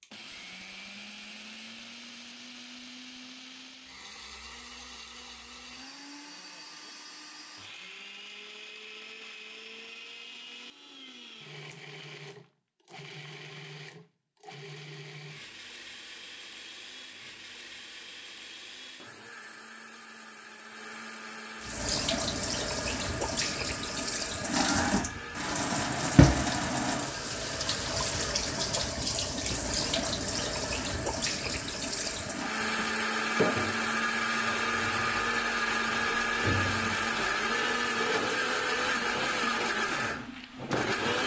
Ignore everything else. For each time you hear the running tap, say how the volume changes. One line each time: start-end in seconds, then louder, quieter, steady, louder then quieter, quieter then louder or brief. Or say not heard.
21.6-41.2 quieter.